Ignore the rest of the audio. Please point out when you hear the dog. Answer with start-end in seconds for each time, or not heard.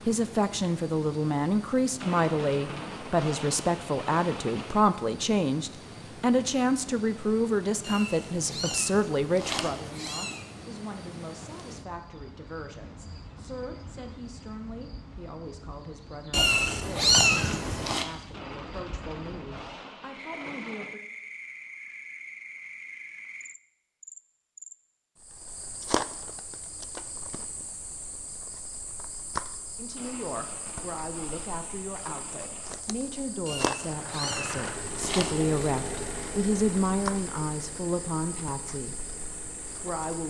not heard.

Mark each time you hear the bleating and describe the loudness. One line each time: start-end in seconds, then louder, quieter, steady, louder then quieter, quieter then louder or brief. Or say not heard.
not heard.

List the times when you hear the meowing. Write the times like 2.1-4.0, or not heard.
7.8-10.4, 16.3-18.1, 33.5-35.6.